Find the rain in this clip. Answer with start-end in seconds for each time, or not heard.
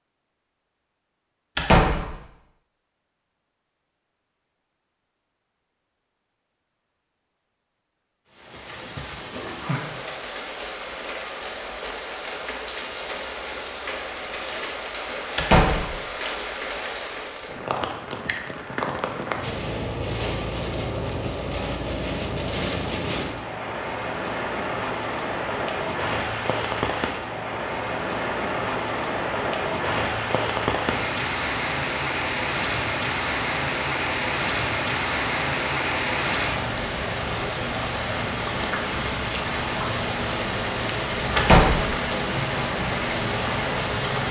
8.3-44.2.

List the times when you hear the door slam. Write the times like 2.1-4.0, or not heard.
1.6-2.1, 15.3-15.9, 41.4-41.9.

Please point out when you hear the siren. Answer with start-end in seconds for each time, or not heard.
not heard.